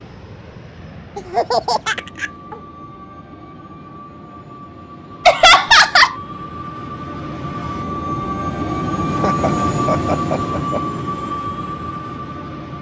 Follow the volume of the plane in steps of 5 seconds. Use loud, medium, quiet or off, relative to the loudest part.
quiet, loud, loud.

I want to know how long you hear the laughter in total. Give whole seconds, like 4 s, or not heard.
4 s.